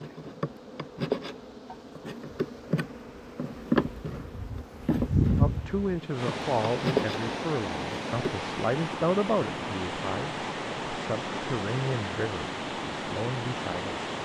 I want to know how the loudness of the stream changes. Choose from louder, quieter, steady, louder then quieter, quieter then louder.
louder.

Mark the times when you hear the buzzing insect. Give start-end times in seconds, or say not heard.
0.0-8.4.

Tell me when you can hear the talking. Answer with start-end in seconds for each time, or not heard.
5.3-14.0.